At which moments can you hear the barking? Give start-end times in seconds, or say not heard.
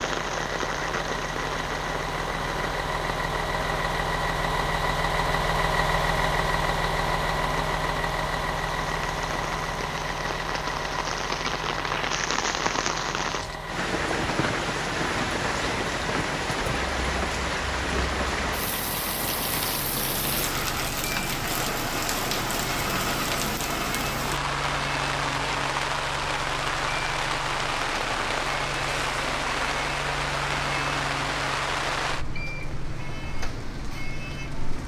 not heard.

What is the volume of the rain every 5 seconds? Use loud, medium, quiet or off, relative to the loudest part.
medium, medium, loud, loud, loud, loud, loud.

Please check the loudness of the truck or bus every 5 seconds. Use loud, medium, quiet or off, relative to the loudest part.
loud, loud, medium, medium, medium, medium, medium.